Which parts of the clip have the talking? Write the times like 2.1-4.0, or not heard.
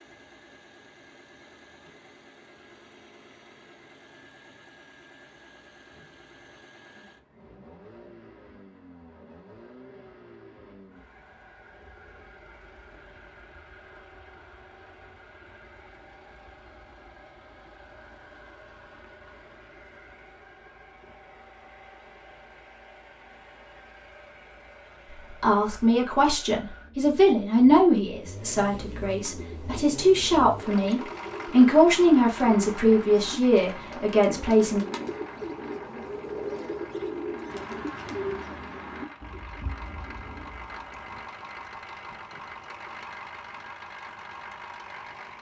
25.4-34.8.